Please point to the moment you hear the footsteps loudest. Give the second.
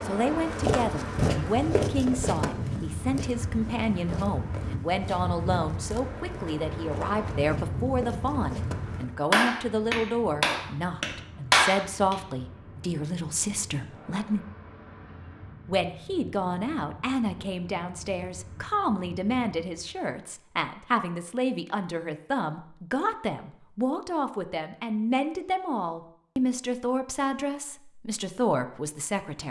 1 s.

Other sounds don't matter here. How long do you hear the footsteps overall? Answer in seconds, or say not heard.
9 s.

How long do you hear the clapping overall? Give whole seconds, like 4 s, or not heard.
3 s.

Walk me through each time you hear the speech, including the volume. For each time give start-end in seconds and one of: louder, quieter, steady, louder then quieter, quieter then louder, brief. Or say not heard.
0.0-14.4 steady
15.7-29.4 steady.